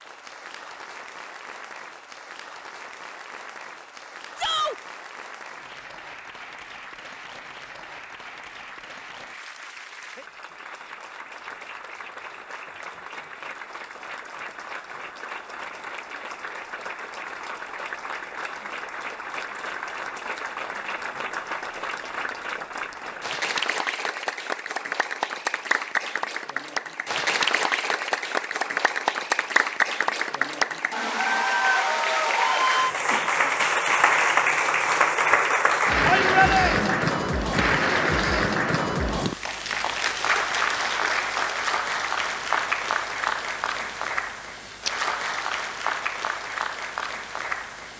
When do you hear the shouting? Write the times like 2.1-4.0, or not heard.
4.3-4.8, 36.0-36.9.